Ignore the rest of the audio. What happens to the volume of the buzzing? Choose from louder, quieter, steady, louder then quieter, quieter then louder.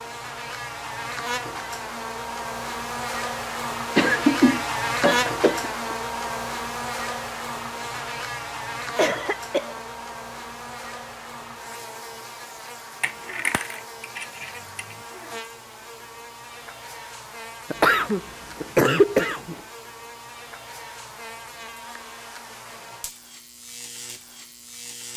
quieter.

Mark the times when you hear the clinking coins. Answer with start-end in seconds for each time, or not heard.
13.0-15.0.